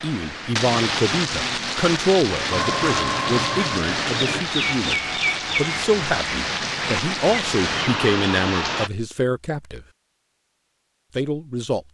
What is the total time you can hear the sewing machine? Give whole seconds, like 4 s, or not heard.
2 s.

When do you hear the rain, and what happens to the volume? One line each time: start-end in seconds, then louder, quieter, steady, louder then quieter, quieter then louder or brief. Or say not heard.
0.0-8.9 steady.